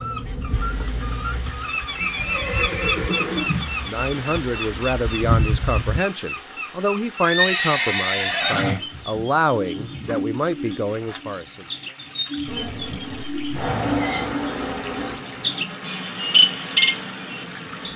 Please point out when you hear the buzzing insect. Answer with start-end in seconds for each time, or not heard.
0.0-6.0, 12.4-17.9.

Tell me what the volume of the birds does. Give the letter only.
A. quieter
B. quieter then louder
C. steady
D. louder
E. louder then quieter
D.